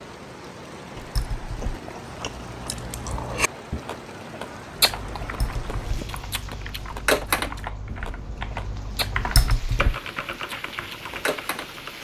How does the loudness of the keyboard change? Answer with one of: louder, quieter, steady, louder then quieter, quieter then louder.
louder then quieter.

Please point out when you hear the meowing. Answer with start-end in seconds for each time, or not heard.
0.9-1.8, 5.2-6.0, 9.2-9.9.